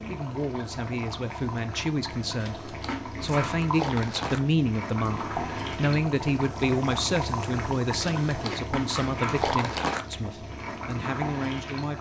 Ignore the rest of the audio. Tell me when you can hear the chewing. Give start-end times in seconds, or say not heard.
2.4-4.4, 8.0-10.1.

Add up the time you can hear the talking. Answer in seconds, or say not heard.
12 s.